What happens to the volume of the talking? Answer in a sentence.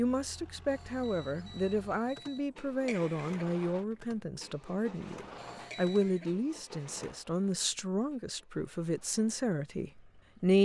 The volume of the talking stays about the same.